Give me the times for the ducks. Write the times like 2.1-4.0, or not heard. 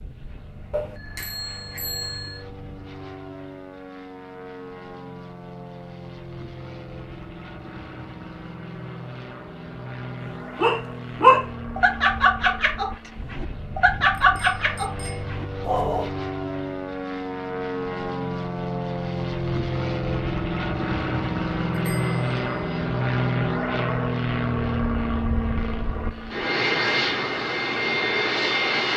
not heard.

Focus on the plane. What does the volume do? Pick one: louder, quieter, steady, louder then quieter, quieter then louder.
louder.